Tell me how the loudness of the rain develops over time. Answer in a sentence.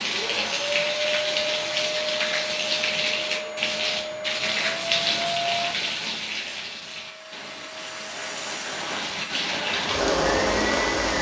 The loudness of the rain goes down, then up.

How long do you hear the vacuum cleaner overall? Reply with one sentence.
The vacuum cleaner can be heard for 11 seconds in total.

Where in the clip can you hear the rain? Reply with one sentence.
You can hear the rain from 0.0 to 11.1 s.